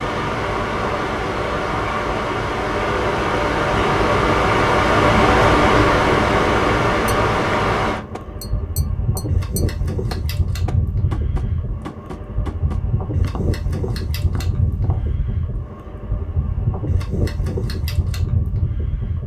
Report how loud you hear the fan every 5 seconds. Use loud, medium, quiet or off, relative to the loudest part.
loud, loud, medium, medium.